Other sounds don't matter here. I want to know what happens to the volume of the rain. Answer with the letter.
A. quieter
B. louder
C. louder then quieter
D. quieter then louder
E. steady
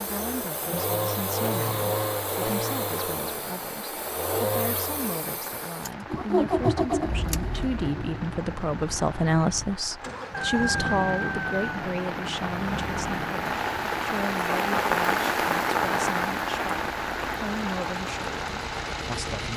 B.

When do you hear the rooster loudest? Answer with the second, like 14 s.
11 s.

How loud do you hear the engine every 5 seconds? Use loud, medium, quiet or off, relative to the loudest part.
loud, loud, medium, medium.